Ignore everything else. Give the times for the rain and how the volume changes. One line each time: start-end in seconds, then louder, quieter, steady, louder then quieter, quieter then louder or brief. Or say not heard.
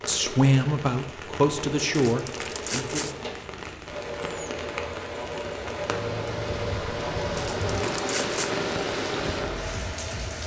0.0-10.4 louder.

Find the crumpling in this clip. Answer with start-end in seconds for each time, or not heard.
1.9-3.1, 7.3-8.5.